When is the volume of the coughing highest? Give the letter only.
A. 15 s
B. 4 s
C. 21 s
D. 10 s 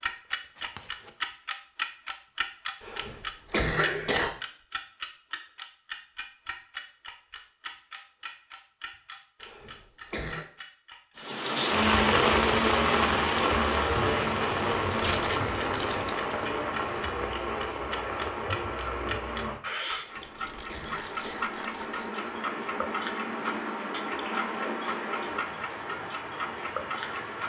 B.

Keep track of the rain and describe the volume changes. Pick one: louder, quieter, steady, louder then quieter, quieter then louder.
quieter.